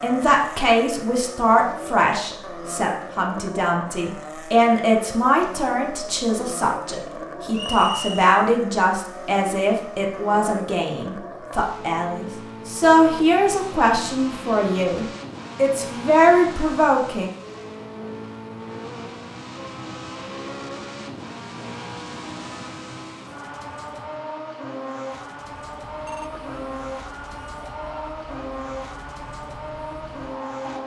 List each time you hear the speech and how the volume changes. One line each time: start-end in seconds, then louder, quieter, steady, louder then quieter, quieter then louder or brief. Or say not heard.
0.0-17.3 steady.